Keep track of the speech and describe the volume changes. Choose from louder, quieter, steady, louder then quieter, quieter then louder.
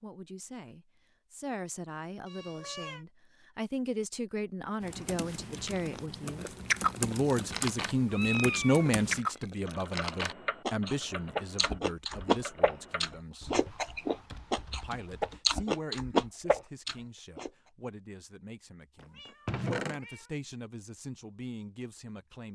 louder then quieter.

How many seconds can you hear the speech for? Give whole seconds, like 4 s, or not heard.
21 s.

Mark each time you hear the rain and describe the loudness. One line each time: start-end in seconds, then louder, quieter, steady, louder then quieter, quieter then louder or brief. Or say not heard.
not heard.